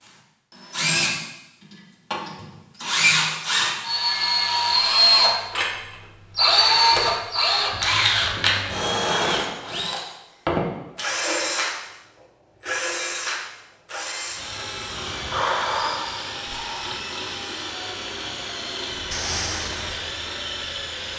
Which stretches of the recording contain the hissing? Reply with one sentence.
You can hear the hissing from 14.3 to 17.0 s and from 18.9 to 21.1 s.